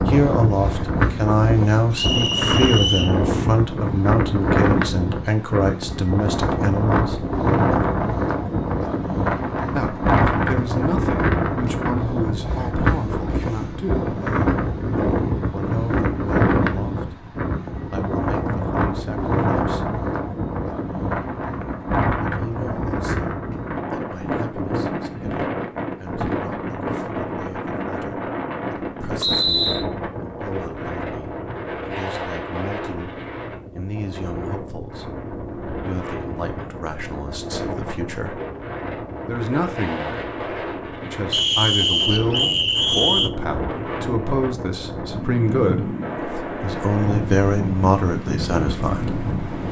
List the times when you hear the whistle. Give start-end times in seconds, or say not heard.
1.9-3.1, 29.2-29.9, 41.3-43.3.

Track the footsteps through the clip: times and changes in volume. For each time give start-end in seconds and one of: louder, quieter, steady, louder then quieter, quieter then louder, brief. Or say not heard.
not heard.